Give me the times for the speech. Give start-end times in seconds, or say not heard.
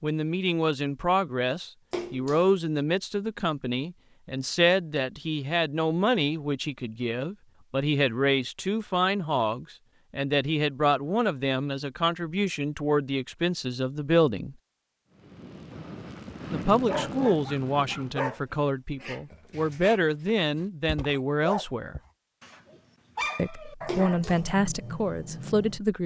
0.0-14.6, 16.5-22.0, 23.4-26.0.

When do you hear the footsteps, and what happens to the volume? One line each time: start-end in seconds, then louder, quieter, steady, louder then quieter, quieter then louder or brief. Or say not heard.
not heard.